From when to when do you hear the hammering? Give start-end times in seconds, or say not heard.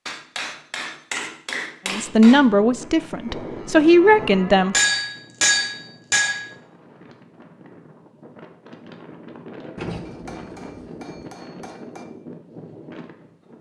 0.1-2.5, 4.7-6.5, 10.1-12.1.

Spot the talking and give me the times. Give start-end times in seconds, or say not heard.
1.9-4.8.